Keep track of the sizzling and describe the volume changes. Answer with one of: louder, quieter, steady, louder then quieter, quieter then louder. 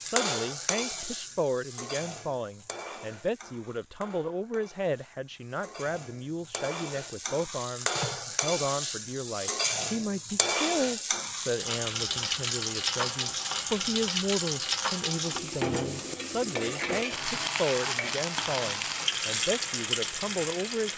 louder.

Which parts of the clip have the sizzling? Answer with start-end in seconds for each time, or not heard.
0.0-20.9.